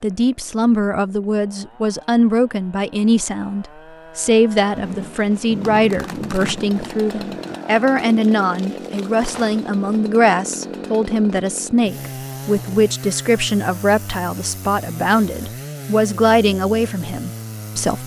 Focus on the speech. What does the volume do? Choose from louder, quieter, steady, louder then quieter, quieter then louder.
steady.